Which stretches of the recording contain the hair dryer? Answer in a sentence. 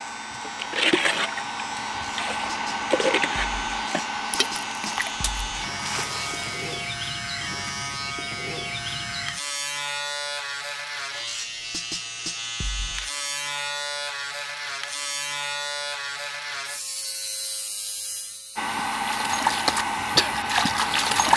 You can hear the hair dryer from 0.0 to 6.1 s and from 18.6 to 21.3 s.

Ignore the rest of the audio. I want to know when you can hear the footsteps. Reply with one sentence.
The footsteps can't be heard in this clip.